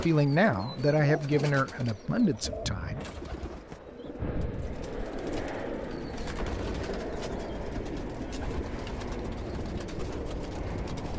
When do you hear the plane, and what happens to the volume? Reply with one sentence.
You can hear the plane from 0.1 to 11.1 s, getting louder.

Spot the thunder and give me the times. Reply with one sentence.
The thunder can be heard from 3.0 to 4.3 s.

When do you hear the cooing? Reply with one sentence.
The cooing can be heard from 0.0 to 11.1 s.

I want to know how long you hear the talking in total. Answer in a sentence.
You can hear the talking for 3 seconds altogether.